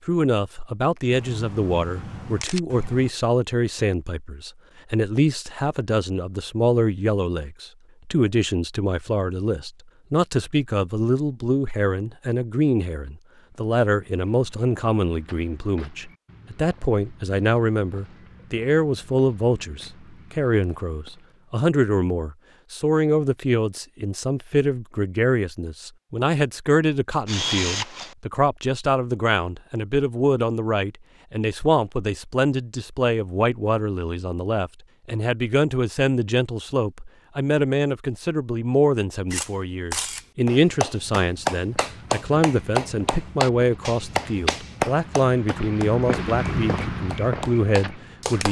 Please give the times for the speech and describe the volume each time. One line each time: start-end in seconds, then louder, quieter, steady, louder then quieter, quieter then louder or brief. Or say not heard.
0.1-48.4 steady.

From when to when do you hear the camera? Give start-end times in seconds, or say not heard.
1.1-3.1, 27.2-28.1, 39.3-40.2.